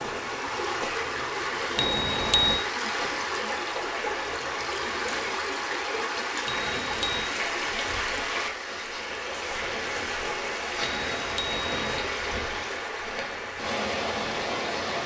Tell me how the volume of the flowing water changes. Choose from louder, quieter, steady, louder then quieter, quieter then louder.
steady.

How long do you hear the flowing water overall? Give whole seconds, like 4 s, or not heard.
15 s.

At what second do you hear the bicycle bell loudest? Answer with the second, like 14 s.
2 s.